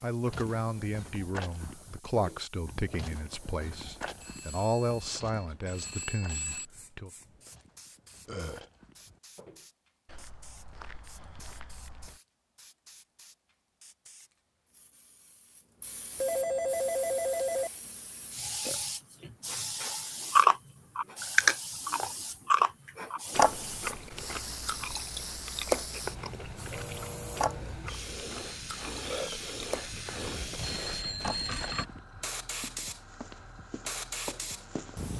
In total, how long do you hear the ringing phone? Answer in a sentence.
The ringing phone can be heard for 6 seconds in total.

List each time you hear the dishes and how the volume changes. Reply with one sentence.
The dishes can't be heard in this clip.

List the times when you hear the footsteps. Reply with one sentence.
You can hear the footsteps from 0.2 to 12.2 s and from 30.2 to 35.1 s.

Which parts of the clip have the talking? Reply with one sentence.
The talking can be heard from 0.0 to 7.1 s.